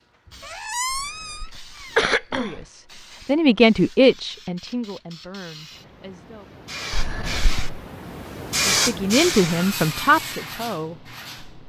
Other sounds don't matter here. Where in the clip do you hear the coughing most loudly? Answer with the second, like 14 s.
2 s.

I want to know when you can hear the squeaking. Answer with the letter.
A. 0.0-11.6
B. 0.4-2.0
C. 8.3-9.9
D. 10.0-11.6
B.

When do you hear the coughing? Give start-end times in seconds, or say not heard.
0.9-2.6, 6.9-7.8.